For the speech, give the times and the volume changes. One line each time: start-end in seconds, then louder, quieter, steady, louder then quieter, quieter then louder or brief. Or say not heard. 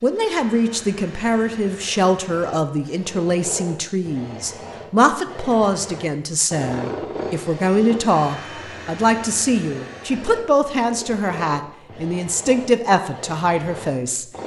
0.0-14.2 steady.